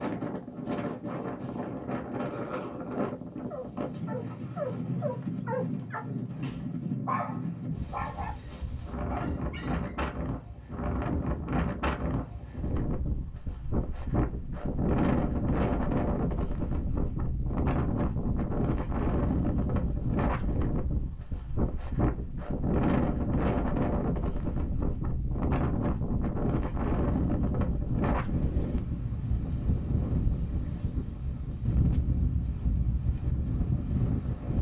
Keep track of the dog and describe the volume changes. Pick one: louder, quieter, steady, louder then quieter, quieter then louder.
quieter.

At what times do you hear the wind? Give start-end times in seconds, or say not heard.
0.0-34.5.